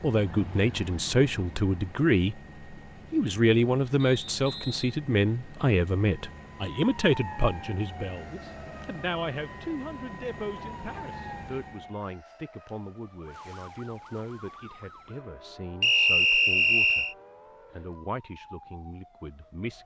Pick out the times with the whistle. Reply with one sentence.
The whistle can be heard from 4.0 to 5.0 s and from 15.8 to 17.1 s.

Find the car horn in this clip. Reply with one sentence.
You can't hear the car horn here.